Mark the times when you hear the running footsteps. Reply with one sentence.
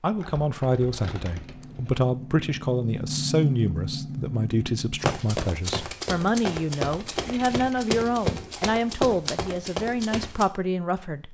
You can hear the running footsteps from 5.0 to 10.4 s.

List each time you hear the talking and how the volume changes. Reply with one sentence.
You can hear the talking from 0.0 to 11.2 s, at a steady volume.